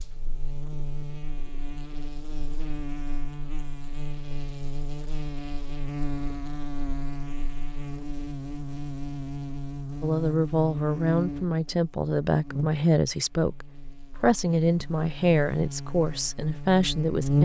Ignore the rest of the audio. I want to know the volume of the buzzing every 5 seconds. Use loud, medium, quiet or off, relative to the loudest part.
medium, medium, medium, loud.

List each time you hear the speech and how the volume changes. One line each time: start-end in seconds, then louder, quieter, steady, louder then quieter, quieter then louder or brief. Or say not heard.
10.0-17.4 steady.